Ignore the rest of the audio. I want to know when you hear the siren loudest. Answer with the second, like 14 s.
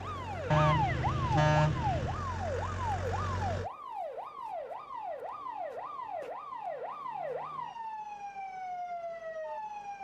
1 s.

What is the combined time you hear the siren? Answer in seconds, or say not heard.
10 s.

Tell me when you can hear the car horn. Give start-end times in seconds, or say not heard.
0.5-2.2.